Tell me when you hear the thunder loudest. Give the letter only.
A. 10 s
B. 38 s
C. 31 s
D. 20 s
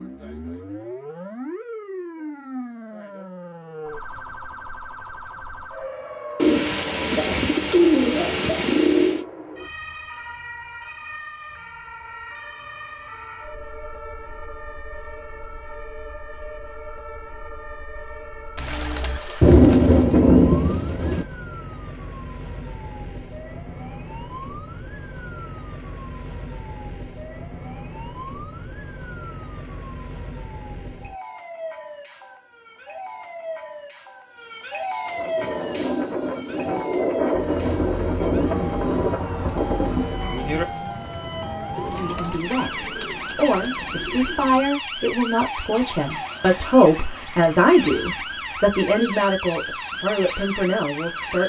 D.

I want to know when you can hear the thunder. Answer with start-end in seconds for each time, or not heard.
19.4-21.2, 37.3-40.6.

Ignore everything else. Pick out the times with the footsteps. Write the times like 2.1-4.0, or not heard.
not heard.